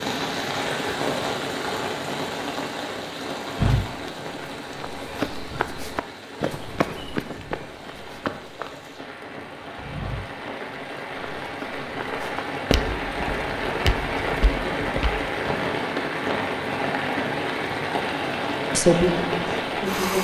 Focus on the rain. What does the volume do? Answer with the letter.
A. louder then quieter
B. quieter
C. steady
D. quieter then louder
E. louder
D.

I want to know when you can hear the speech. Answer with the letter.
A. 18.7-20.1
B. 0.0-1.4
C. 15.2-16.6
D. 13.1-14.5
A.